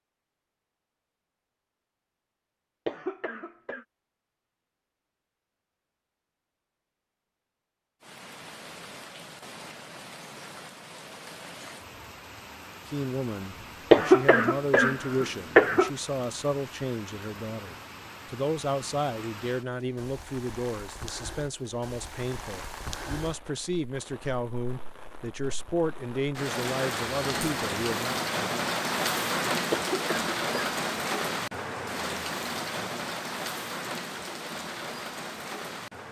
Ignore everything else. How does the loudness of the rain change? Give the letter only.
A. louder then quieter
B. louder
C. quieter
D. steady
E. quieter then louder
B.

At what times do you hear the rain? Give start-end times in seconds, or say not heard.
8.0-36.0.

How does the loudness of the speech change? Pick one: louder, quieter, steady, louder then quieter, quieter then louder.
steady.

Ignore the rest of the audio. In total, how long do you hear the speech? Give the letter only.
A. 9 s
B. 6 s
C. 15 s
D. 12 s
C.